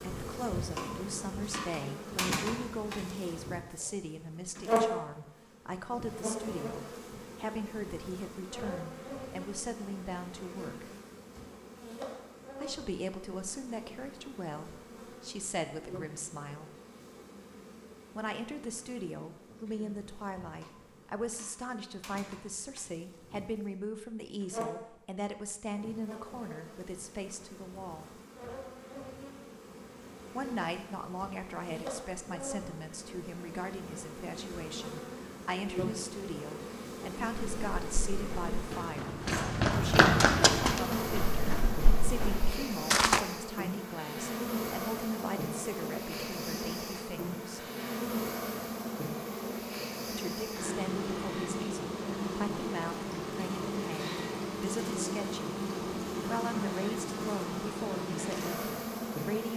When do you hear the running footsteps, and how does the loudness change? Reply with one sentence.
The running footsteps can be heard from 37.5 to 43.2 s, getting louder then quieter.